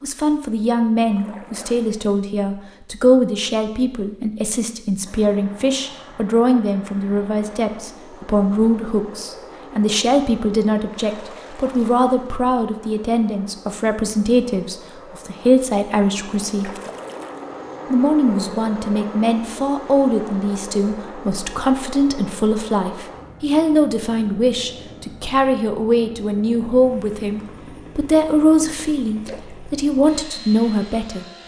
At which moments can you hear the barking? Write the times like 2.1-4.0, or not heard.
not heard.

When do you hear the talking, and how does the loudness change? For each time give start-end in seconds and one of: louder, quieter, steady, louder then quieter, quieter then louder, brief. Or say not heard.
0.0-16.7 steady
17.9-31.2 steady.